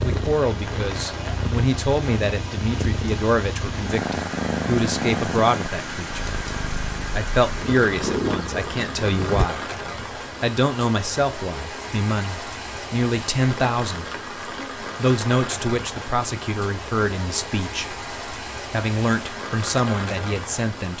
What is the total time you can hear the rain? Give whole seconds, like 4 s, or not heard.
21 s.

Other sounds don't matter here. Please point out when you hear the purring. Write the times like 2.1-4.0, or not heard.
0.0-9.5.